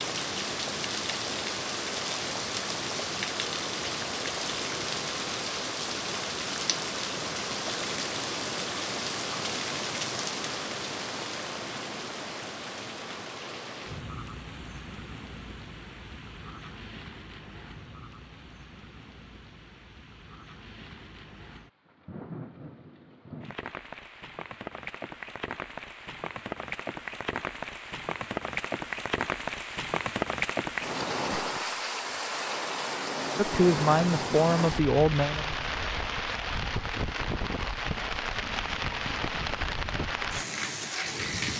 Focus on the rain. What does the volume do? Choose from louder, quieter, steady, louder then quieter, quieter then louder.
quieter then louder.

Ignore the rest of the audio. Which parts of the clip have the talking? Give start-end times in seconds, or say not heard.
33.4-35.5.